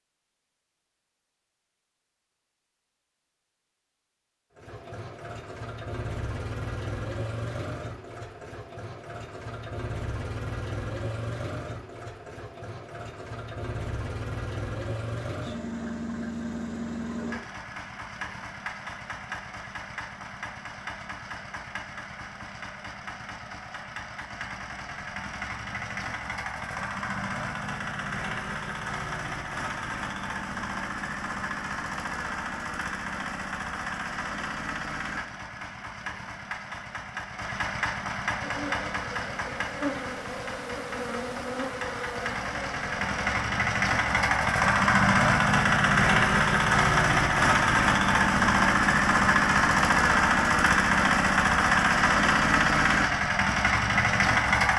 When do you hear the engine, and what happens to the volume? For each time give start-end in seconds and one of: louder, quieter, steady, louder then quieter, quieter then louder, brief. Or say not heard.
4.5-54.7 louder.